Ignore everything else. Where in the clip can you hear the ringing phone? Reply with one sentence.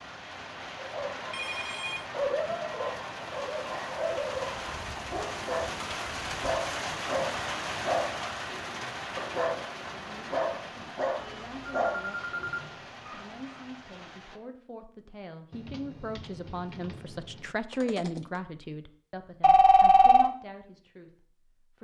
The ringing phone can be heard from 1.3 to 2.0 s, from 11.2 to 12.7 s and from 19.4 to 20.3 s.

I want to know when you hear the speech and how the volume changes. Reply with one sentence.
You can hear the speech from 9.9 to 21.8 s, getting louder then quieter.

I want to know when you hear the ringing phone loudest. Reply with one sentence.
The loudest moment of the ringing phone is at 20 seconds.